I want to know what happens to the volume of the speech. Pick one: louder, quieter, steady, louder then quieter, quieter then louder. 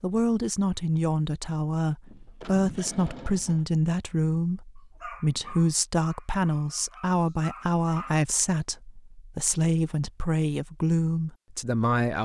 steady.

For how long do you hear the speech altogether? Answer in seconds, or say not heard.
12 s.